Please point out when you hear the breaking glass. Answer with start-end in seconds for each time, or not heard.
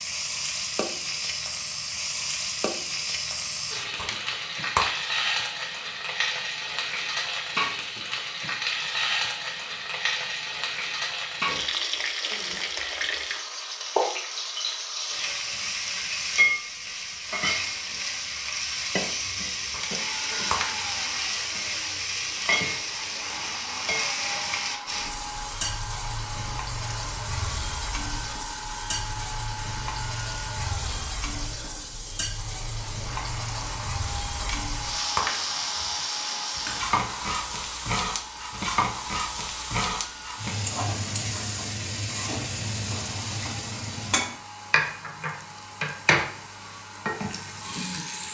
4.0-4.9, 19.7-20.9, 34.4-35.6.